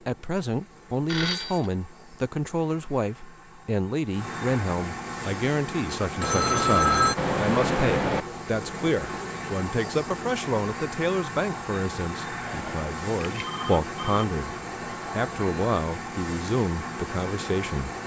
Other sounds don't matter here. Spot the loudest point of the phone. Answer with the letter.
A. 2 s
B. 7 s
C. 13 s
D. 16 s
B.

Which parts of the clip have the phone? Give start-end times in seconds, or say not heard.
1.1-1.7, 6.2-8.2, 12.4-14.2.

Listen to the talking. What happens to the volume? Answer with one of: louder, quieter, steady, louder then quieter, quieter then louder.
steady.